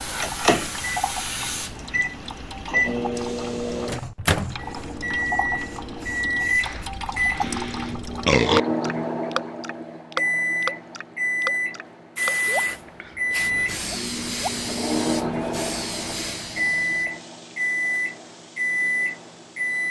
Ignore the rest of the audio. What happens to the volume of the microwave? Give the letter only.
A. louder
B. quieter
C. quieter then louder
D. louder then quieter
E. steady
E.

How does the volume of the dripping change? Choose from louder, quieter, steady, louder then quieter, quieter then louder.
louder.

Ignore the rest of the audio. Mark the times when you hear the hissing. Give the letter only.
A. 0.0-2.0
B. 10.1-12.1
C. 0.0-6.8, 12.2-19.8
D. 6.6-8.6
C.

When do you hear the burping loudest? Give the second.
8 s.